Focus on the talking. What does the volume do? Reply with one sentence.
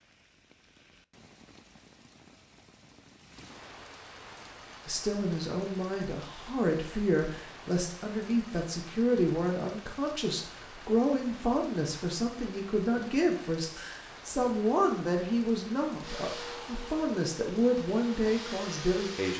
The volume of the talking stays about the same.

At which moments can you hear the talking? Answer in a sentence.
You can hear the talking from 4.8 to 19.3 s.